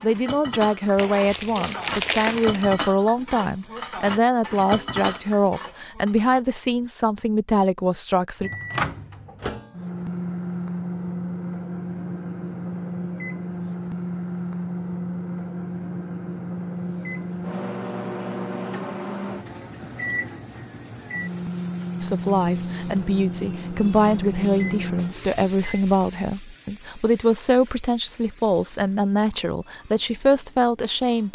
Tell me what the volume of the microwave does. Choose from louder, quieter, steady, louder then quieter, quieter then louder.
steady.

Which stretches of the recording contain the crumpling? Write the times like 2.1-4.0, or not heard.
0.9-2.6.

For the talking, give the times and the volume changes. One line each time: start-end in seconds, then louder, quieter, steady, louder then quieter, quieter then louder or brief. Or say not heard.
0.0-8.5 steady
22.0-31.3 steady.